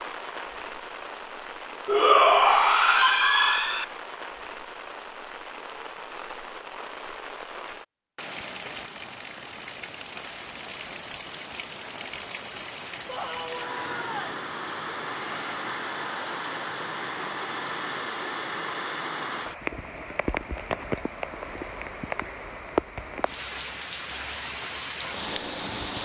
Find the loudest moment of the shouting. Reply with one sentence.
The volume of the shouting peaks at 2 seconds.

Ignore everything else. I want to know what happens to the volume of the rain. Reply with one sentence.
The loudness of the rain goes up.